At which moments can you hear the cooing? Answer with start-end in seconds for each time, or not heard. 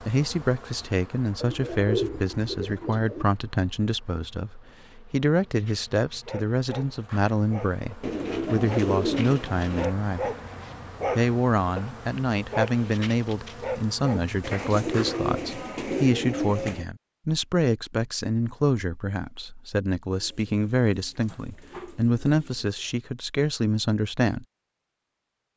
1.4-3.2, 8.0-9.9, 14.4-16.9, 20.1-22.9.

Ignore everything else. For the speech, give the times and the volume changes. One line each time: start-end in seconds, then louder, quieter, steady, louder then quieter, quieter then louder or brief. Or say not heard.
0.1-10.3 steady
11.2-24.4 steady.